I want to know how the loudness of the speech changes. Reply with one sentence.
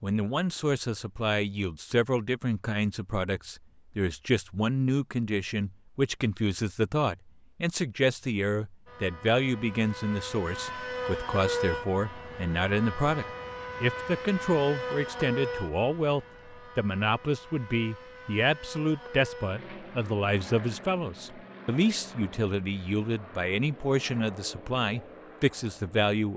The loudness of the speech stays about the same.